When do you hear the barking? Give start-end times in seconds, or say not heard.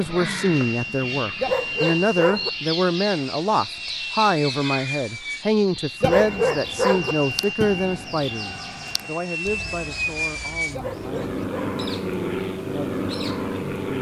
1.4-2.5, 6.0-7.2, 10.7-11.8.